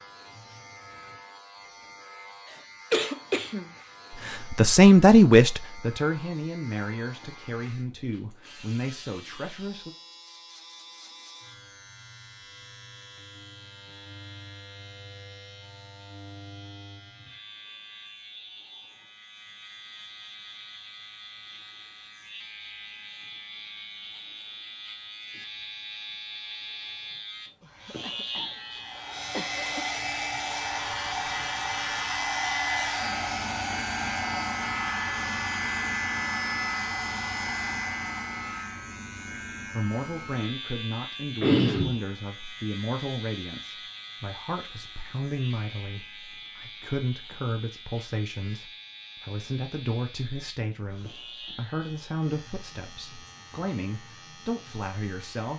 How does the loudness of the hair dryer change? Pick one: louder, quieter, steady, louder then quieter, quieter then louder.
steady.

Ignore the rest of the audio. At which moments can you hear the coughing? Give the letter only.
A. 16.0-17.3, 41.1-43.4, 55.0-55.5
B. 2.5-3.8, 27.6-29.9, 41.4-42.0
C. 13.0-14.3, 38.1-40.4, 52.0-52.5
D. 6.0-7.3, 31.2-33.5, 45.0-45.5
B.